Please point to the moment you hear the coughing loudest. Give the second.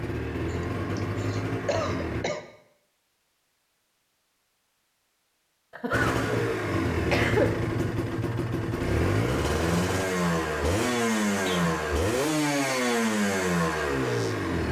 7 s.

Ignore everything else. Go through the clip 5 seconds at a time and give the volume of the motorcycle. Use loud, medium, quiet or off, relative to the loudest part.
medium, loud, loud.